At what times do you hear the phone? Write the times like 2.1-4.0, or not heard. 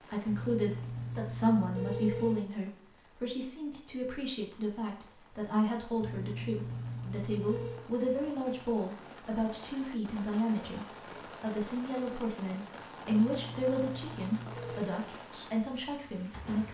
0.2-2.4, 6.0-7.8, 13.1-14.8.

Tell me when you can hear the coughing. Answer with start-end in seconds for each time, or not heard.
not heard.